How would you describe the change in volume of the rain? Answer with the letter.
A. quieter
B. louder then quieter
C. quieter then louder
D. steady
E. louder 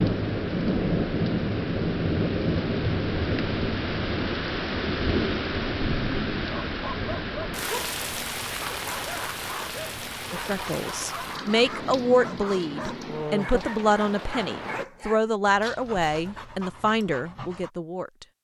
A.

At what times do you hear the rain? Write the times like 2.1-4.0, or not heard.
0.0-14.8.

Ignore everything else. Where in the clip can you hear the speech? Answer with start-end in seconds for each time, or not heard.
10.3-18.2.